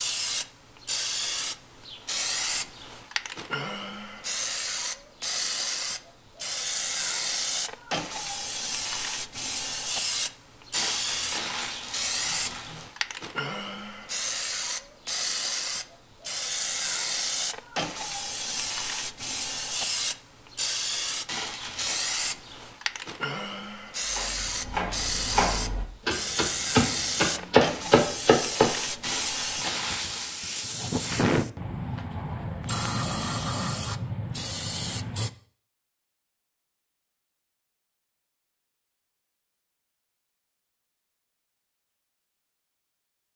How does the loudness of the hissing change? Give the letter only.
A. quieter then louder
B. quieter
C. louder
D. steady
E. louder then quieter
D.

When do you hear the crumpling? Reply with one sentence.
You can hear the crumpling from 10.7 to 12.9 s, from 21.2 to 22.0 s and from 29.0 to 30.4 s.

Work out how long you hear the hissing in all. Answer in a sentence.
You can hear the hissing for 35 seconds altogether.